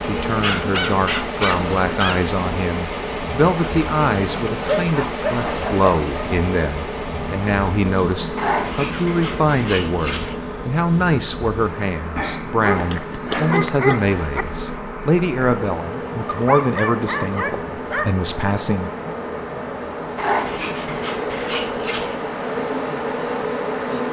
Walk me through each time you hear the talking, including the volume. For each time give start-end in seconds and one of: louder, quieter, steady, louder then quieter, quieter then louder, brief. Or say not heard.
0.0-18.9 steady.